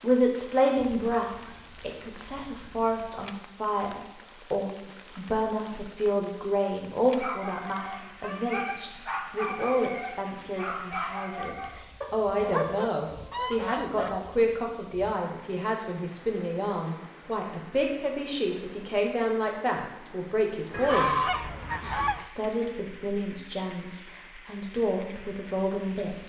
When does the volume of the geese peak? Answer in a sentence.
The loudest moment of the geese is at 21 seconds.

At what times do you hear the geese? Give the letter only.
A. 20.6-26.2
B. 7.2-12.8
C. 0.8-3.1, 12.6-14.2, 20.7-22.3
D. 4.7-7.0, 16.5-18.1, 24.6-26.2
C.